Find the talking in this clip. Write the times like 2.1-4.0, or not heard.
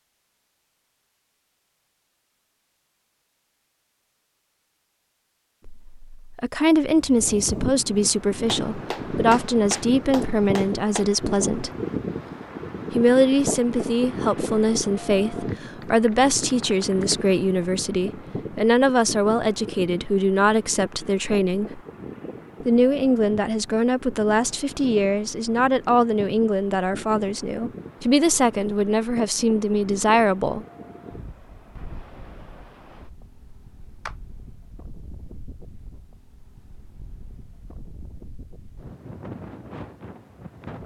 5.7-11.7, 12.9-21.8, 22.6-30.6.